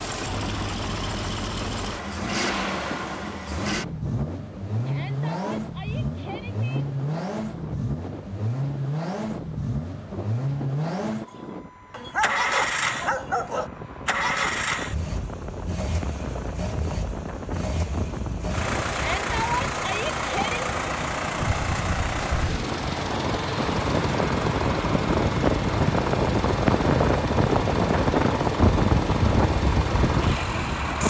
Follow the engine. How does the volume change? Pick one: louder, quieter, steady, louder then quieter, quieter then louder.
steady.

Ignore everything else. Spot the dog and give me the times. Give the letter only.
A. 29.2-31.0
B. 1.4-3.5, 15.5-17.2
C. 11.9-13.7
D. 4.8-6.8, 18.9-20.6
C.